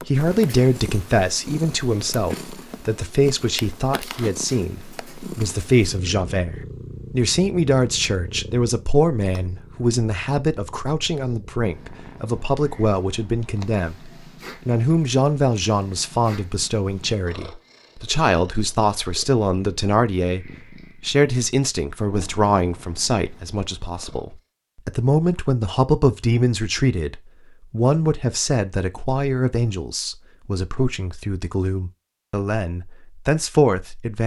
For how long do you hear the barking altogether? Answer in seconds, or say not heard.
not heard.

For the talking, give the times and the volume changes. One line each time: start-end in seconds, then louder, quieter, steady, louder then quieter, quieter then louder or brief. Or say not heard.
0.1-34.2 steady.